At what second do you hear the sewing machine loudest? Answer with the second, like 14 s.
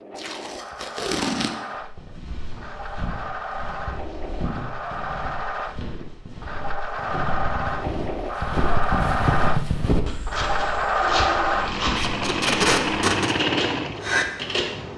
11 s.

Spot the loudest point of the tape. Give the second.
13 s.